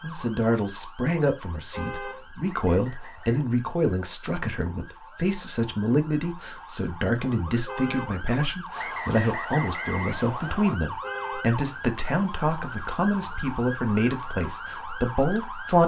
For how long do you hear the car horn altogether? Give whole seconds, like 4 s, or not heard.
2 s.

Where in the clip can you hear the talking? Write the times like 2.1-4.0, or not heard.
0.0-15.8.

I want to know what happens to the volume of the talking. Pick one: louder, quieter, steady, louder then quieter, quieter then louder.
steady.